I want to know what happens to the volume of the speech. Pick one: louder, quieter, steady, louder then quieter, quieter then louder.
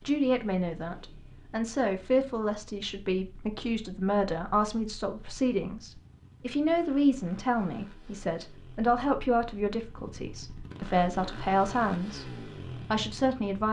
steady.